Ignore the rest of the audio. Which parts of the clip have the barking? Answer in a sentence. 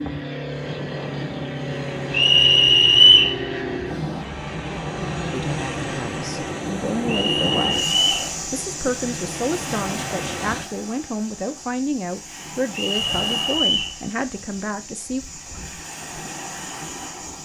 You can't hear the barking here.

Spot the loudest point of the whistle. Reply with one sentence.
The loudest moment of the whistle is at 3 seconds.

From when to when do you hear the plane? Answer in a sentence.
The plane can be heard from 0.0 to 10.7 s.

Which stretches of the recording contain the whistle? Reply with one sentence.
You can hear the whistle from 2.1 to 3.4 s, from 7.0 to 8.3 s and from 12.7 to 13.9 s.